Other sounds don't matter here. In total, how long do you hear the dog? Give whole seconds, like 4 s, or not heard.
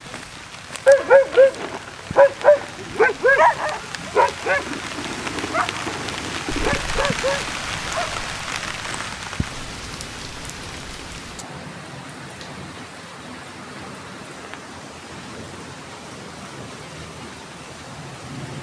7 s.